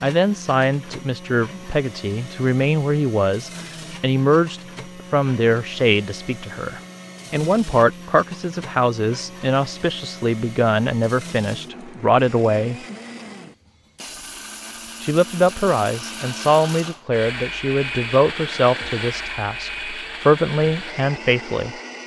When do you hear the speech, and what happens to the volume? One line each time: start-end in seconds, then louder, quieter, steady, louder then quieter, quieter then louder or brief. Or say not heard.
0.0-12.8 steady
15.0-21.8 quieter then louder.